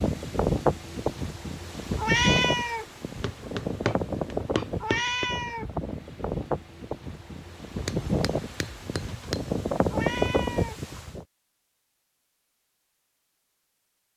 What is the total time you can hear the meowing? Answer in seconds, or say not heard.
3 s.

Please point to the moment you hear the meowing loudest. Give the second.
2 s.